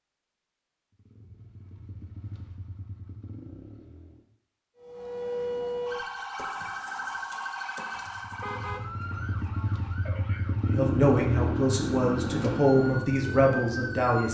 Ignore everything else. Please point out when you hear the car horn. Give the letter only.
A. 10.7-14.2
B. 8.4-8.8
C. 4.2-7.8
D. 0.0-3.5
B.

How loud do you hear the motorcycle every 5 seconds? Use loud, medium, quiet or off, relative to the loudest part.
quiet, medium, loud.